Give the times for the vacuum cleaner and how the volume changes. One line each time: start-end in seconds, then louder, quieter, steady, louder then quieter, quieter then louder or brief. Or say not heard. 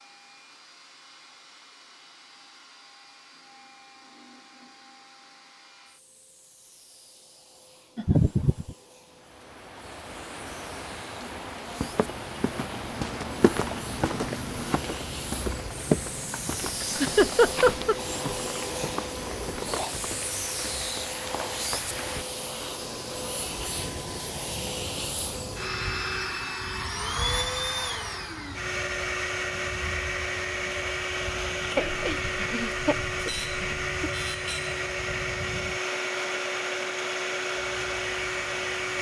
0.0-38.9 louder.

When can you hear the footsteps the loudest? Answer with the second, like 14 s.
16 s.